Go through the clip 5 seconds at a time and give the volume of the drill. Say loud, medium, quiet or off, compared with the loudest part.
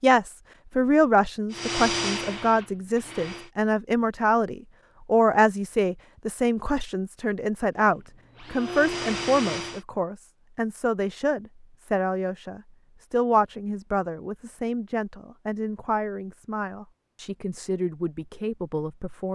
loud, loud, off, off.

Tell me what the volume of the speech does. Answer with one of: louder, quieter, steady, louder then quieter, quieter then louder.
quieter.